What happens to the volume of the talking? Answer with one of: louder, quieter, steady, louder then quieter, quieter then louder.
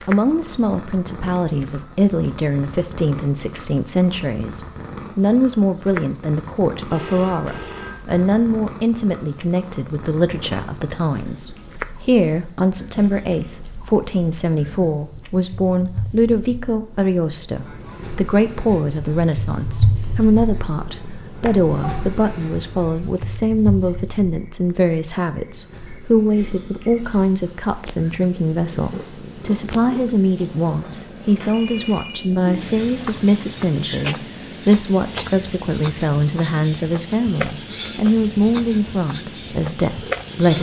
steady.